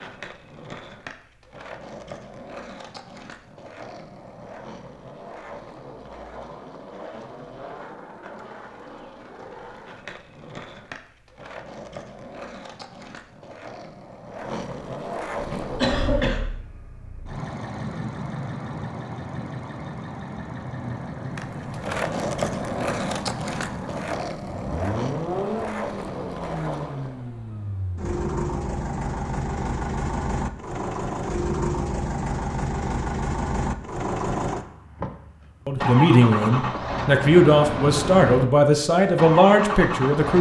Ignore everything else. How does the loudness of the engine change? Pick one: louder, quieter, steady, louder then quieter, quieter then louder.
louder.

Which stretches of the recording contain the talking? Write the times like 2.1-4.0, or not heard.
35.6-40.3.